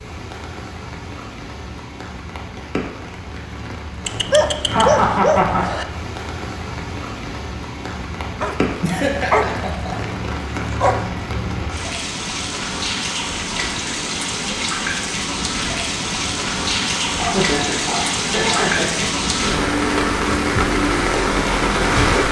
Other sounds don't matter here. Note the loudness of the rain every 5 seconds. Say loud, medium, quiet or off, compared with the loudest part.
quiet, medium, medium, loud, loud.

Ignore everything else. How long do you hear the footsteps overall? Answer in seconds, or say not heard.
not heard.